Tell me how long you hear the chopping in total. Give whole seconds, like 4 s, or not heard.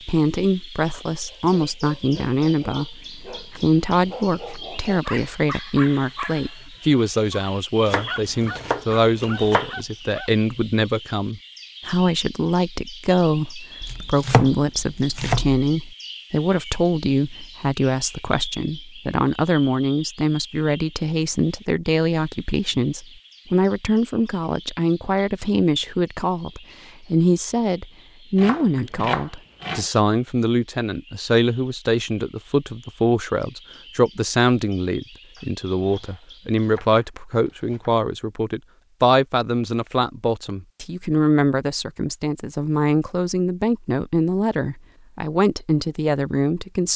8 s.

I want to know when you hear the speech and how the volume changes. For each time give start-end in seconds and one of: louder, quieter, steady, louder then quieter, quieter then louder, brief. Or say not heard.
0.1-46.9 steady.